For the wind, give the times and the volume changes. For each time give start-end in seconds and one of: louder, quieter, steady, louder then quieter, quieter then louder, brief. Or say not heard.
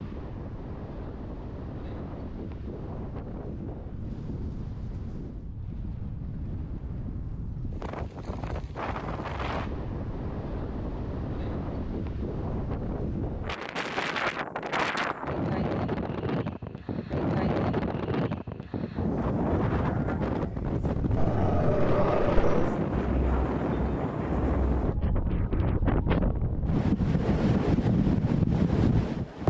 0.0-29.4 louder.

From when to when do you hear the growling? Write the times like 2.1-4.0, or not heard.
21.1-22.8.